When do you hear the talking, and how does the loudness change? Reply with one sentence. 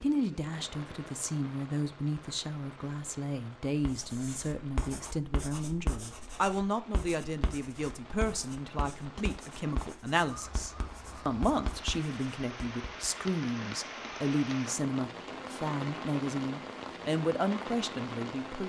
You can hear the talking from 0.0 to 18.6 s, at a steady volume.